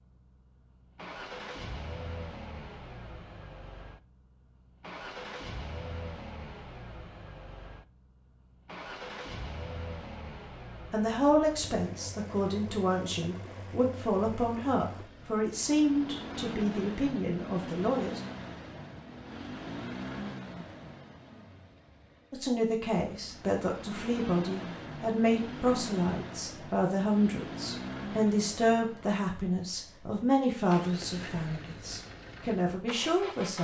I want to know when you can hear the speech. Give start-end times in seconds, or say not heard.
10.9-18.2, 22.3-33.5.